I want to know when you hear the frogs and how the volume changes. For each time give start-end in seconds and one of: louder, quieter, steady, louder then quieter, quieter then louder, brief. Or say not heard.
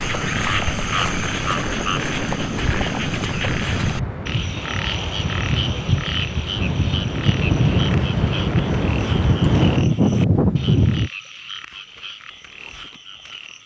0.0-13.6 quieter.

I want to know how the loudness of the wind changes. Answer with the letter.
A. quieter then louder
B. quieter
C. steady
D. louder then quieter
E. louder
E.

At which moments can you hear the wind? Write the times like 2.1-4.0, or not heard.
0.0-11.1.